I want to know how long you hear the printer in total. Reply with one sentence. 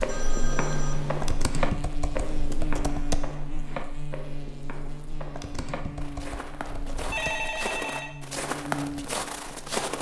The printer can't be heard in this clip.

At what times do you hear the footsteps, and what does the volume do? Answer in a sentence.
The footsteps can be heard from 0.0 to 9.9 s, getting quieter then louder.